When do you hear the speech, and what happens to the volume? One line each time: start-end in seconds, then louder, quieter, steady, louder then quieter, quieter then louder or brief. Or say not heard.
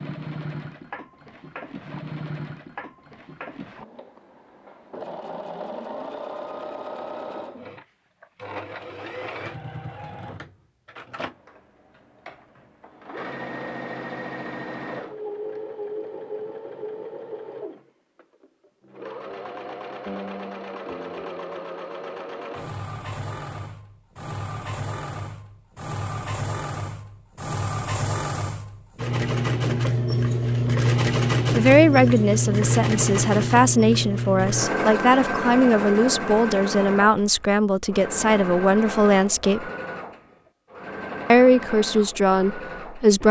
31.6-39.6 steady
41.3-43.2 brief.